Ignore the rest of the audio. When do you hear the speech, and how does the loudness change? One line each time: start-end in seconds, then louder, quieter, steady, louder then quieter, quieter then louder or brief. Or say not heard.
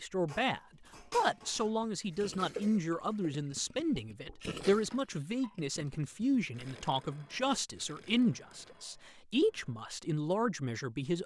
0.0-11.2 steady.